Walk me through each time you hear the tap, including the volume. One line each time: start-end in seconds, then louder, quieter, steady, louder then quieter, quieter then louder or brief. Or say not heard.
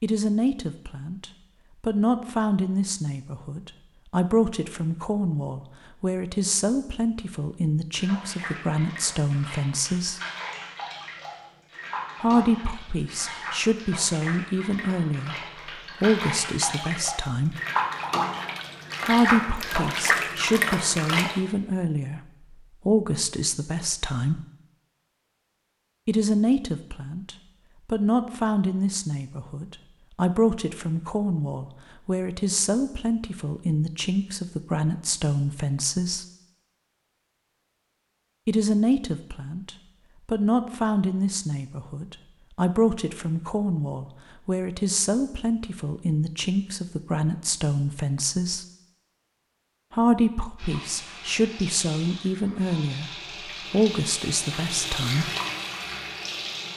7.9-21.4 louder
50.5-56.7 louder.